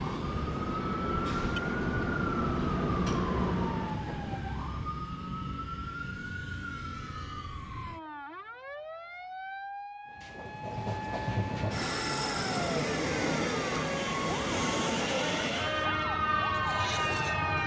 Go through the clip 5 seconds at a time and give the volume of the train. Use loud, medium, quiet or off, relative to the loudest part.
loud, off, loud, loud.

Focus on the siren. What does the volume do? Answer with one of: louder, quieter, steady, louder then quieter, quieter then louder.
quieter then louder.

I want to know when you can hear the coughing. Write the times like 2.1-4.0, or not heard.
not heard.